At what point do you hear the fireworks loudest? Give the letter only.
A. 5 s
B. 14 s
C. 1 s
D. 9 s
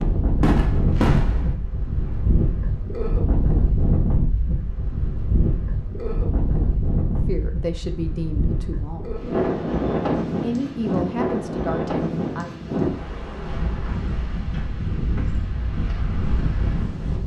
C.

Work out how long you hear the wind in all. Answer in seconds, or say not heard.
17 s.